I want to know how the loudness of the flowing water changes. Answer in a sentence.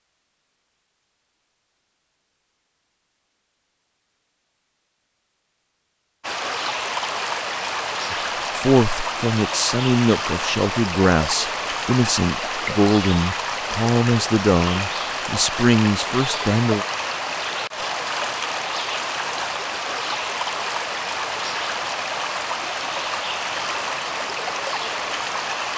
The loudness of the flowing water stays about the same.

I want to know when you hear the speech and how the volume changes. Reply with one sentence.
The speech can be heard from 8.1 to 16.9 s, at a steady volume.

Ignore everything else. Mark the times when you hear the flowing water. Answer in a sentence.
The flowing water can be heard from 6.2 to 25.7 s.